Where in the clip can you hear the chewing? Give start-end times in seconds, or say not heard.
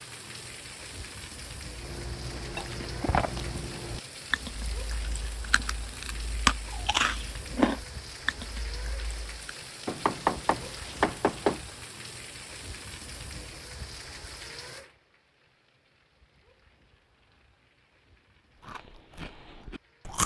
1.8-9.5, 18.6-20.2.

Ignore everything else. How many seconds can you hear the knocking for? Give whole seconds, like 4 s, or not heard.
2 s.